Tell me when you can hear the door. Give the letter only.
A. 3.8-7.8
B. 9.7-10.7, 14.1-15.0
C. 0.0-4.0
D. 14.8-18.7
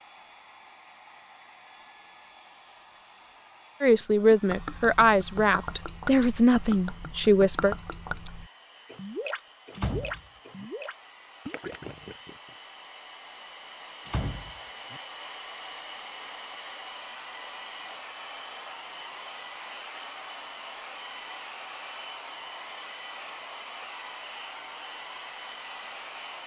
B.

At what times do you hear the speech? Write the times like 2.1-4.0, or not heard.
3.8-7.8.